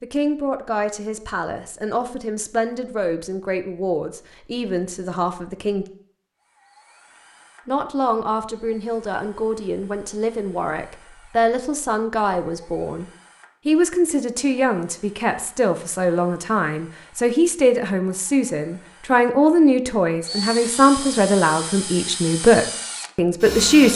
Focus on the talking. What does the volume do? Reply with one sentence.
The volume of the talking goes up.